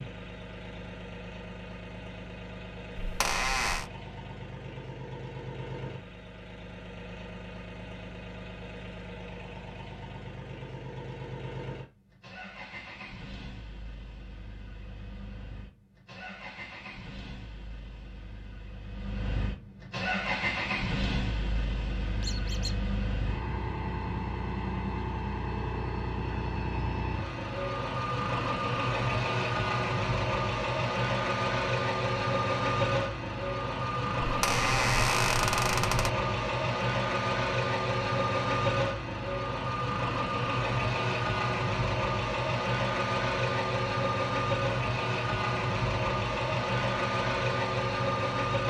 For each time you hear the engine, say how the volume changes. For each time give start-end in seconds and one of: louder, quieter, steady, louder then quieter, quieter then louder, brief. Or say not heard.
0.0-48.6 louder.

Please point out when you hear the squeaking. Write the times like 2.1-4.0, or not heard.
3.0-3.9, 22.2-22.8, 34.2-36.1.